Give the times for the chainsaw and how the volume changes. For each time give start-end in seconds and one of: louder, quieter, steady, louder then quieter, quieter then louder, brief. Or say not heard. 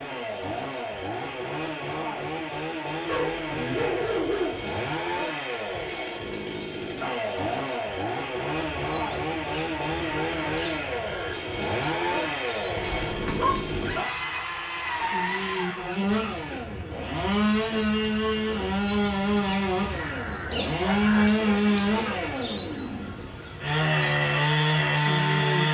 0.0-25.6 louder.